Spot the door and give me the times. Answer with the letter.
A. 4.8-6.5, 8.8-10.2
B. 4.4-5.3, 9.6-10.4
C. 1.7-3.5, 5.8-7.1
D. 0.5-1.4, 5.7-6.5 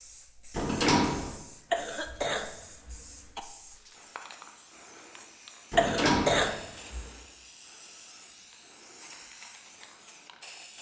D.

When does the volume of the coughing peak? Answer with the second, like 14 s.
6 s.